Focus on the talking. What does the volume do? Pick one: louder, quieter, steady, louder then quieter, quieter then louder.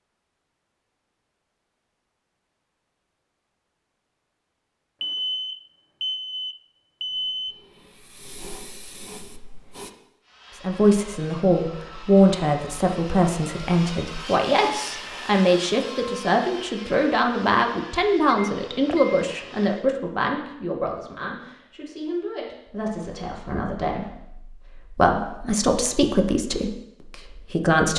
quieter then louder.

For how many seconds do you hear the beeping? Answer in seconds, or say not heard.
4 s.